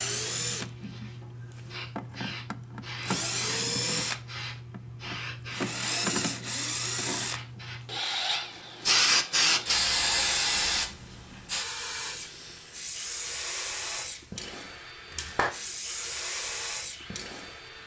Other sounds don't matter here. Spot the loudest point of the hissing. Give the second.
9 s.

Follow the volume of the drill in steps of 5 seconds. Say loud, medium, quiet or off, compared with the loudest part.
loud, loud, quiet, quiet.